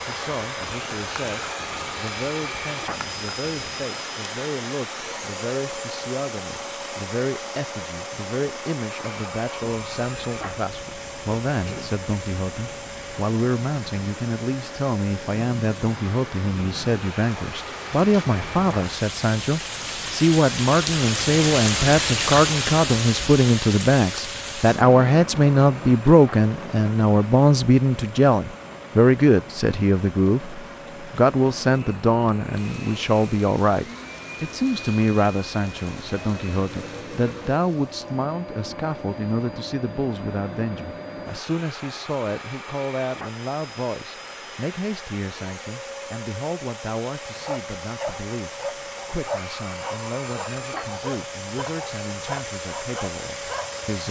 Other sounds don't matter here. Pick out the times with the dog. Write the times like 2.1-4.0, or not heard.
47.4-54.0.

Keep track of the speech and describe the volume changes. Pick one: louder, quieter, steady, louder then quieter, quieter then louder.
louder then quieter.